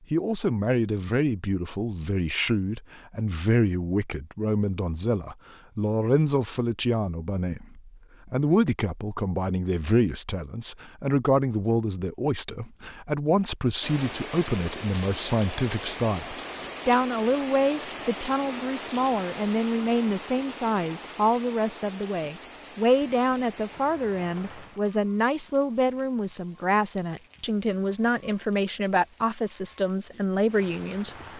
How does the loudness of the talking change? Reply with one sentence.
The volume of the talking stays about the same.